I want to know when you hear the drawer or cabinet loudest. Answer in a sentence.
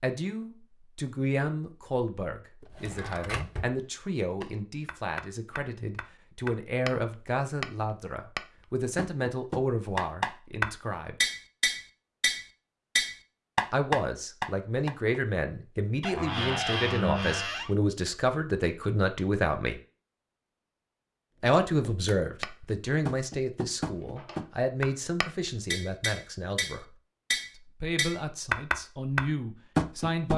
The loudest moment of the drawer or cabinet is at 17 seconds.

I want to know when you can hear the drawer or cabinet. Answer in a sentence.
The drawer or cabinet can be heard from 2.6 to 3.8 s, from 16.0 to 17.8 s and from 23.9 to 24.4 s.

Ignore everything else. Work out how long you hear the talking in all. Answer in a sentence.
You can hear the talking for 25 seconds altogether.